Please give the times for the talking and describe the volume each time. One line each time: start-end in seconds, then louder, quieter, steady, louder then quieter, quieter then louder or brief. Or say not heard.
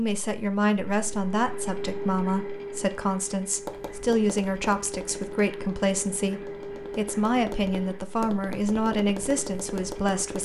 0.0-10.4 steady.